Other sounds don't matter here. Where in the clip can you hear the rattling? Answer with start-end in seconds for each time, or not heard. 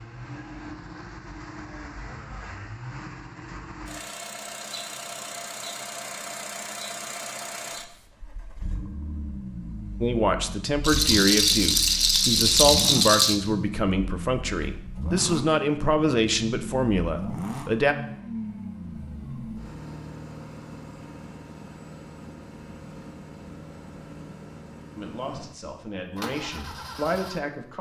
10.8-13.3.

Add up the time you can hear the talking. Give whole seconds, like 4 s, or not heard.
11 s.